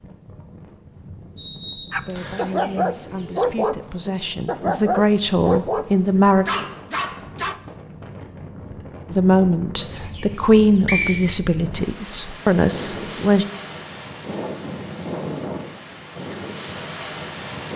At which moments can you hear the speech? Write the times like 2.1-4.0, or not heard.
2.0-6.5, 9.1-13.4.